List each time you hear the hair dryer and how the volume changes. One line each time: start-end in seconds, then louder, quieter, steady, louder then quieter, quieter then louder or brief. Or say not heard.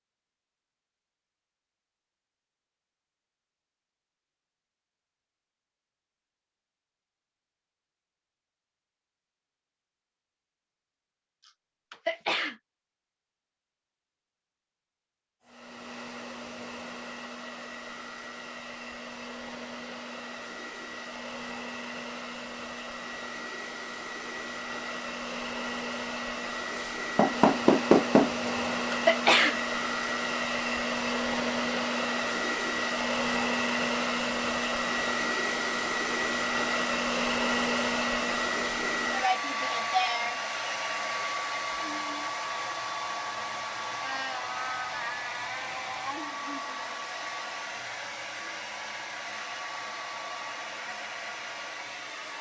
15.4-52.3 louder then quieter.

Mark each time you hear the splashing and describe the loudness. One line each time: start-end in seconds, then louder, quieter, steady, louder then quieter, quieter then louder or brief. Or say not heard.
not heard.